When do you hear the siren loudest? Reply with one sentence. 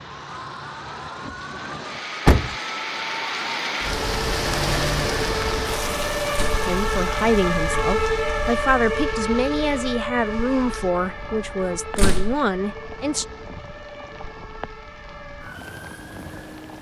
The volume of the siren peaks at 8 seconds.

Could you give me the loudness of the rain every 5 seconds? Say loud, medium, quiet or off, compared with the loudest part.
loud, loud, quiet, quiet.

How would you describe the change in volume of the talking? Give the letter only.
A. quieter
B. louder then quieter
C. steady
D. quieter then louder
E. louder
C.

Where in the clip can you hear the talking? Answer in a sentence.
You can hear the talking from 6.7 to 13.2 s.